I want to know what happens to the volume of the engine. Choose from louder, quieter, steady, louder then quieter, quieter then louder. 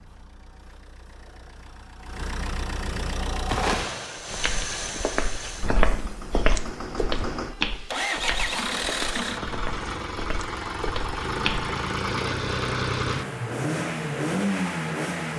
louder.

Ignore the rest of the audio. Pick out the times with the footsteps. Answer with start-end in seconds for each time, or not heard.
3.5-11.7.